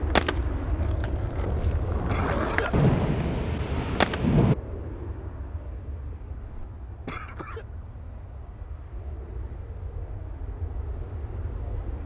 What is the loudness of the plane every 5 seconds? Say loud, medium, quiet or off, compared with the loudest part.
loud, medium, medium.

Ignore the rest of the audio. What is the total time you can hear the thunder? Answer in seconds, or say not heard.
2 s.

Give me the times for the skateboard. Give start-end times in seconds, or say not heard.
0.1-4.2.